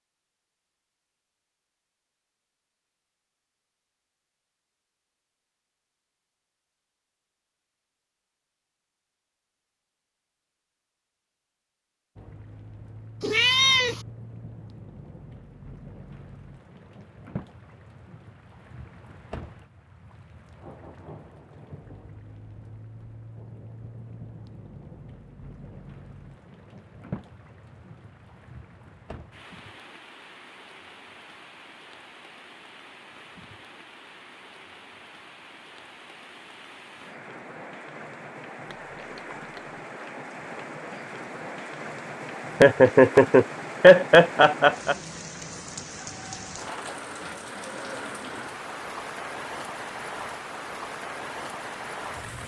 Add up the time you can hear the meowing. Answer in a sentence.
The meowing can be heard for 2 seconds in total.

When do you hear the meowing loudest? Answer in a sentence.
The loudest moment of the meowing is at 14 seconds.